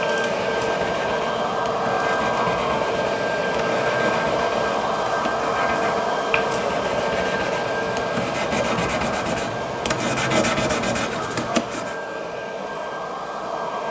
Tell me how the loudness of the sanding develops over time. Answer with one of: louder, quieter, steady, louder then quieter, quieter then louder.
louder.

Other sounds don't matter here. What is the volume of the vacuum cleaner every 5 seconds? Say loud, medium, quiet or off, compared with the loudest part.
loud, loud, medium.